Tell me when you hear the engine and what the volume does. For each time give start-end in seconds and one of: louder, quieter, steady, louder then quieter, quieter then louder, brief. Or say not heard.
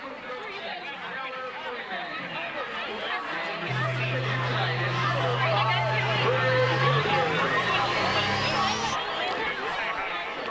3.6-9.0 steady.